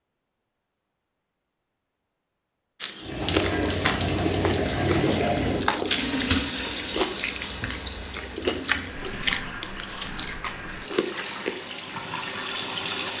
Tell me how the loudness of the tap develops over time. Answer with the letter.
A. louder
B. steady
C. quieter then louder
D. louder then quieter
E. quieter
C.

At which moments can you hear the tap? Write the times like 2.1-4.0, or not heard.
3.0-13.1.